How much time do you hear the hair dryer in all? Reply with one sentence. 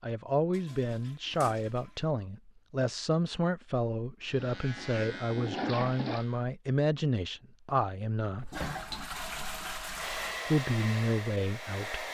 The hair dryer can be heard for 2 seconds in total.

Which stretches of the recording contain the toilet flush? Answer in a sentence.
The toilet flush can be heard from 0.5 to 2.0 s, from 4.4 to 6.2 s and from 8.3 to 10.4 s.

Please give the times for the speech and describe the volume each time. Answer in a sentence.
You can hear the speech from 0.0 to 8.5 s, at a steady volume; and briefly from 10.4 to 12.0 s.